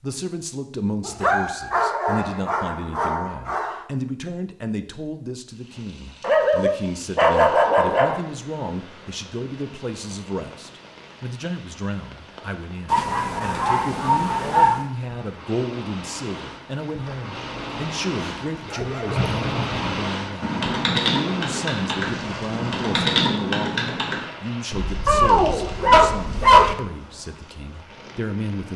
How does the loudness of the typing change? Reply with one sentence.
The volume of the typing goes up, then down.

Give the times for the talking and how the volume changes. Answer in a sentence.
You can hear the talking from 0.0 to 28.7 s, at a steady volume.